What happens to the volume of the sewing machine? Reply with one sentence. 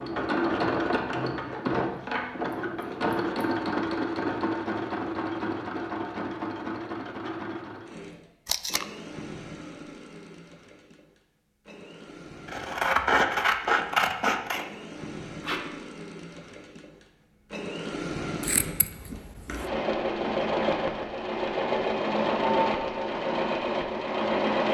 The volume of the sewing machine goes down, then up.